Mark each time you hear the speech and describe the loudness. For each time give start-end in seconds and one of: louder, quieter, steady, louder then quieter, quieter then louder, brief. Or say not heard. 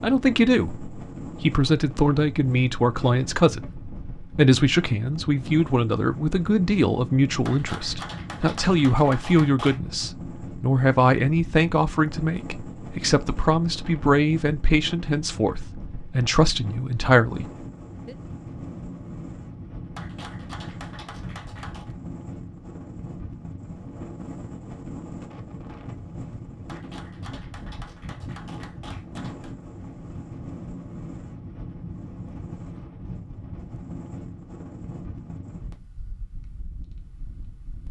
0.0-17.4 steady.